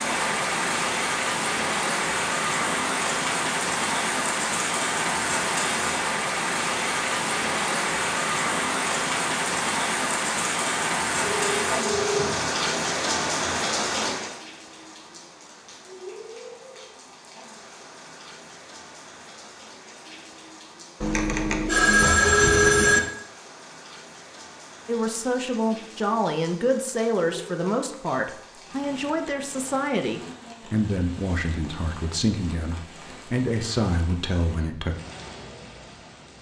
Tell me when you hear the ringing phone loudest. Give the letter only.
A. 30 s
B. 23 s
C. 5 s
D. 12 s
B.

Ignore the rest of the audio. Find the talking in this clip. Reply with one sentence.
The talking can be heard from 24.9 to 35.0 s.